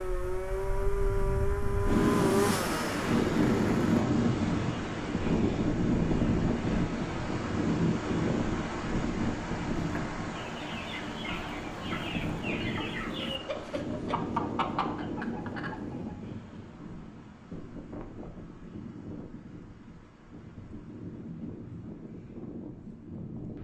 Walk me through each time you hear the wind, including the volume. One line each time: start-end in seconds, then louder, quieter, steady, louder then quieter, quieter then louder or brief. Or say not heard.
0.0-23.5 quieter.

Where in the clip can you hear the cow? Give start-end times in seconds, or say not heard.
not heard.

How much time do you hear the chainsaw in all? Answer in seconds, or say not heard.
4 s.